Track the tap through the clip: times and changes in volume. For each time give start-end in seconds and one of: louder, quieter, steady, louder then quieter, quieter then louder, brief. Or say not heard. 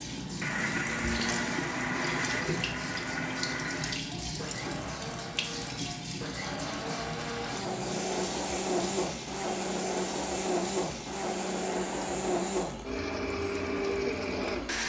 0.0-14.8 quieter.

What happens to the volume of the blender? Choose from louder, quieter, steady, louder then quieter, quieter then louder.
quieter then louder.